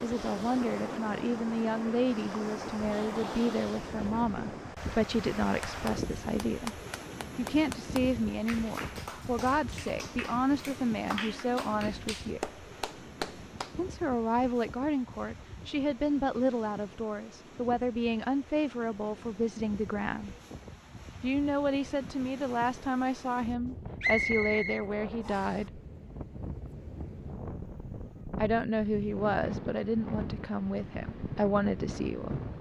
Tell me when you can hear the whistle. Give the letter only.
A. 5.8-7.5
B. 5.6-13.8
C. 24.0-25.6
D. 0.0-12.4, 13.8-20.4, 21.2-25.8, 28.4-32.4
C.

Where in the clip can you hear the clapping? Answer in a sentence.
You can hear the clapping from 5.6 to 13.8 s.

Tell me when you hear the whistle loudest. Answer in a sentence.
The loudest moment of the whistle is at 24 seconds.